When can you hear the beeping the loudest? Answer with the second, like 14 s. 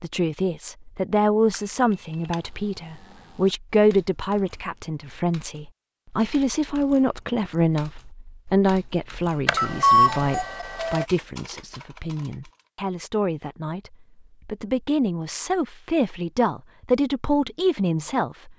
10 s.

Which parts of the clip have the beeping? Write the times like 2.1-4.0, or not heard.
1.5-2.4, 9.4-11.1.